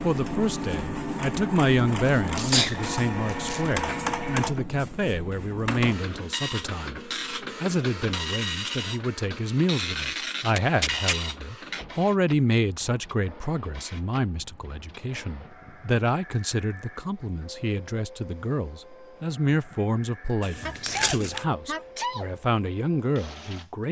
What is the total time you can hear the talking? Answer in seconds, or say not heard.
24 s.